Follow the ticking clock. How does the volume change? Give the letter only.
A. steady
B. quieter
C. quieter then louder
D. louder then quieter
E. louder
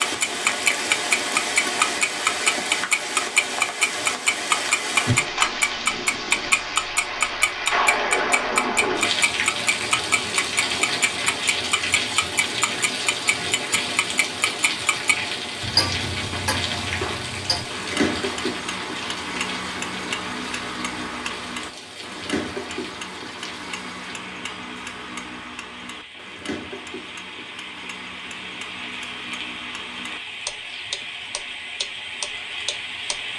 B.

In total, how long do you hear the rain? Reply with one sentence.
The rain can be heard for 33 seconds in total.